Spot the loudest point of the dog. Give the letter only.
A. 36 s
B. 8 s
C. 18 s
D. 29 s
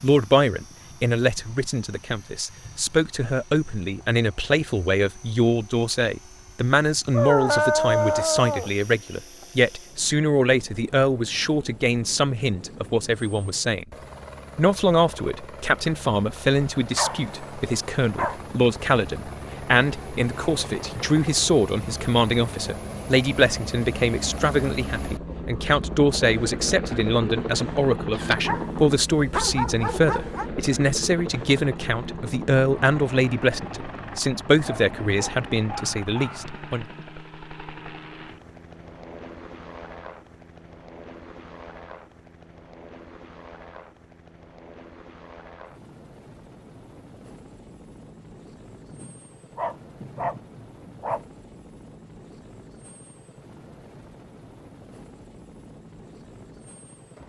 B.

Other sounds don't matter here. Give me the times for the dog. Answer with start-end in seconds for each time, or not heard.
7.1-8.7, 16.9-18.4, 28.1-30.5, 34.6-36.5, 48.9-51.2.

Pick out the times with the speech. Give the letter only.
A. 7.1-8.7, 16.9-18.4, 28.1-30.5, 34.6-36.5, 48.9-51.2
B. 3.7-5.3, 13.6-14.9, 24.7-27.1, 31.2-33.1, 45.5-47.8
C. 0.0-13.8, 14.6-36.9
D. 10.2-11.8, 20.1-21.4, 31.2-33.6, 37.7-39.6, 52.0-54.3
C.